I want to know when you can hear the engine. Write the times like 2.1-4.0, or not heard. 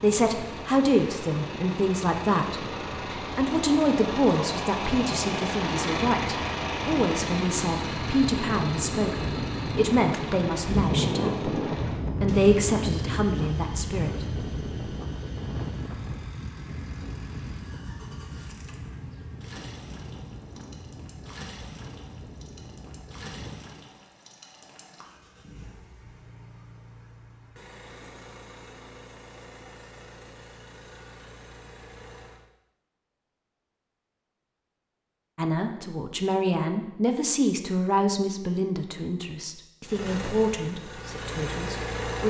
0.0-32.5, 39.8-42.2.